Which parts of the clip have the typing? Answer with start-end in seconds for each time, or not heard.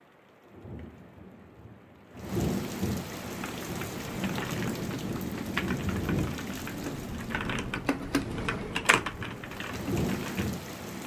3.4-10.5.